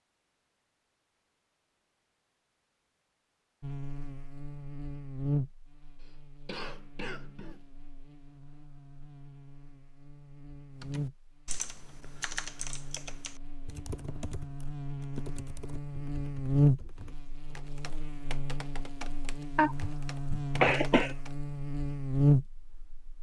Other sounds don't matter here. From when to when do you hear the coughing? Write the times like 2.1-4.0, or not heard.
6.0-7.6, 19.6-21.1.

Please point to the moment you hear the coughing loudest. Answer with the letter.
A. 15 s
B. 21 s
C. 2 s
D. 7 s
B.